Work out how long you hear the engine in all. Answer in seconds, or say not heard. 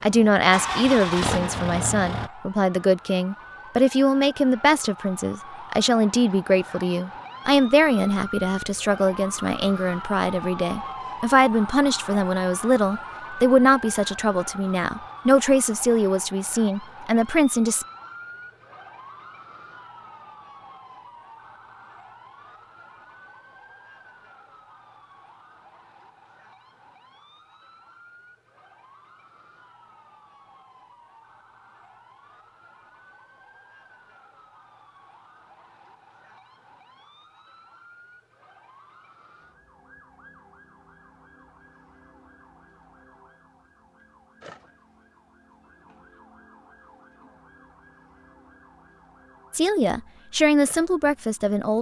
2 s.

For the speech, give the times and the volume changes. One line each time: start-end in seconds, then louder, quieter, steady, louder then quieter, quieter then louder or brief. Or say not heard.
0.0-17.9 steady
49.5-51.7 brief.